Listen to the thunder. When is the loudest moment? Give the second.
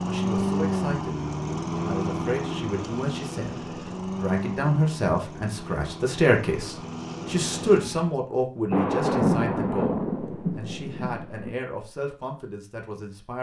9 s.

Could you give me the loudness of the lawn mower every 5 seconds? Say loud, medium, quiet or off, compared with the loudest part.
loud, medium, off.